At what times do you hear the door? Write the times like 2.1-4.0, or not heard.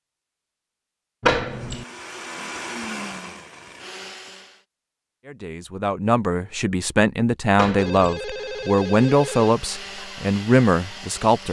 1.2-1.9, 7.5-8.2.